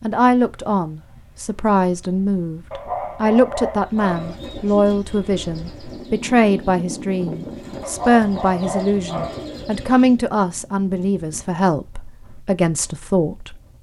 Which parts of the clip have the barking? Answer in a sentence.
You can hear the barking from 2.7 to 4.3 s and from 7.8 to 9.4 s.